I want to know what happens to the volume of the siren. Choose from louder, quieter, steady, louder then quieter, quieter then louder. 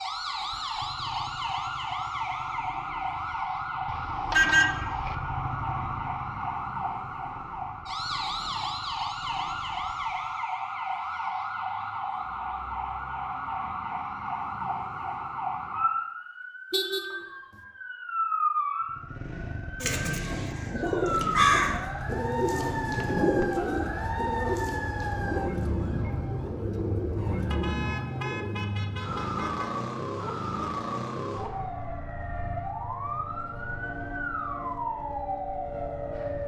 steady.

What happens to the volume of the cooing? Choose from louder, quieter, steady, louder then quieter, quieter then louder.
quieter.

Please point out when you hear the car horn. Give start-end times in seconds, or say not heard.
3.9-5.2, 16.7-17.1, 27.5-29.7.